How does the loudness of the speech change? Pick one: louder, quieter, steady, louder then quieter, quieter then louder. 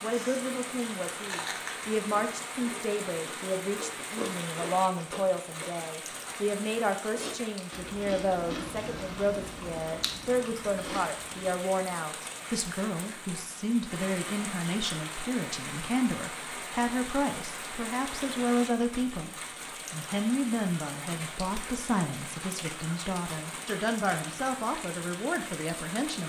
steady.